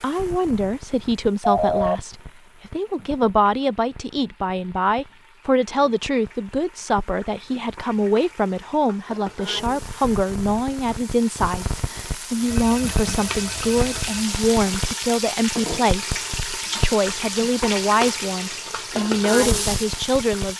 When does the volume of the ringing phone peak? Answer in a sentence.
The volume of the ringing phone peaks at 2 seconds.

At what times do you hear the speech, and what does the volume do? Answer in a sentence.
You can hear the speech from 0.0 to 20.5 s, at a steady volume.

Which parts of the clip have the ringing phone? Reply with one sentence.
You can hear the ringing phone from 1.4 to 2.0 s and from 12.5 to 14.2 s.